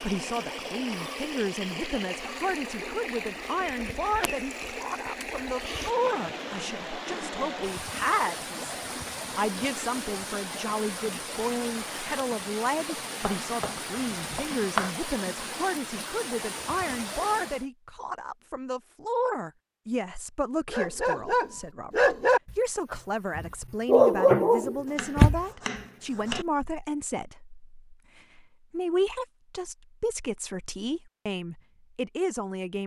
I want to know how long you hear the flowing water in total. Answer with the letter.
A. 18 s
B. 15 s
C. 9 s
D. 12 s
A.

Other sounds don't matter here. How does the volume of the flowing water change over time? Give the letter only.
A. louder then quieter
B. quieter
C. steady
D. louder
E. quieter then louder
C.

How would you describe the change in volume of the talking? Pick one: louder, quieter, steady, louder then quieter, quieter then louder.
steady.